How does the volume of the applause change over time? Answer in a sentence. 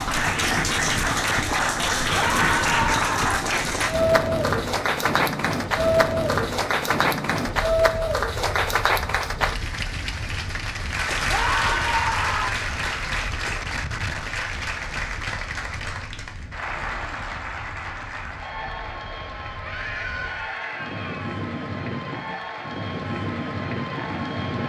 The loudness of the applause goes down.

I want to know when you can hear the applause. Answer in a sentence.
The applause can be heard from 0.0 to 24.6 s.